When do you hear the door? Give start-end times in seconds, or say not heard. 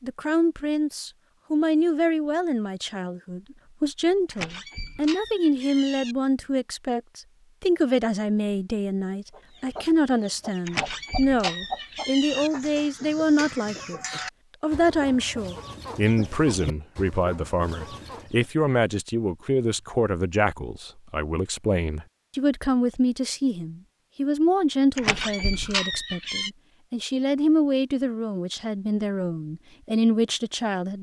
4.3-6.2, 10.7-12.5, 24.9-26.5.